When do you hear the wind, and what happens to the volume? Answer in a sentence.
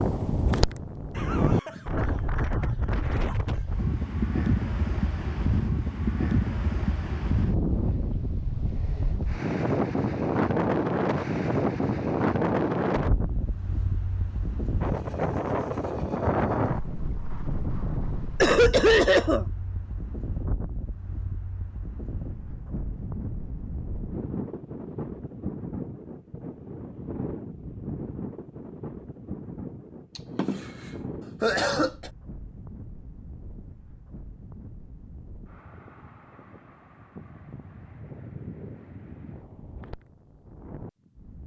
You can hear the wind from 0.0 to 41.4 s, getting quieter.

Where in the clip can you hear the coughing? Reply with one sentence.
The coughing can be heard from 1.1 to 3.0 s, from 18.4 to 19.4 s and from 30.1 to 32.1 s.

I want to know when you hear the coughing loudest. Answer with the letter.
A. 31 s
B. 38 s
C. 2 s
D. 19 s
D.